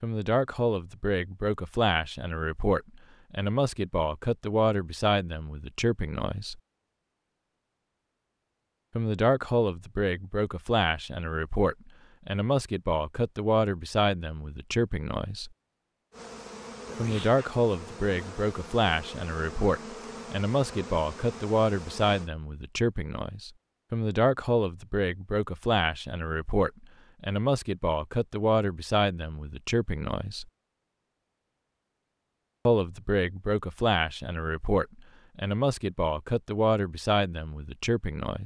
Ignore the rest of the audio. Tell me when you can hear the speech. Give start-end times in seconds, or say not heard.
0.0-6.6, 8.9-15.5, 16.9-30.4, 32.6-38.4.